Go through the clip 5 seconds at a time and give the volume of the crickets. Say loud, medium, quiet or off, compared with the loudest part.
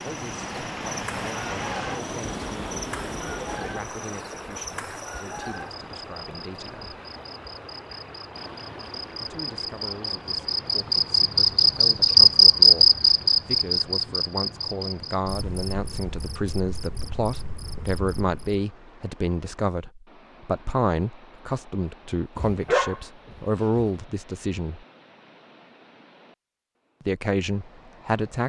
quiet, quiet, loud, quiet, off, off.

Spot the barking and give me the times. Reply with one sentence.
You can hear the barking from 22.4 to 23.9 s.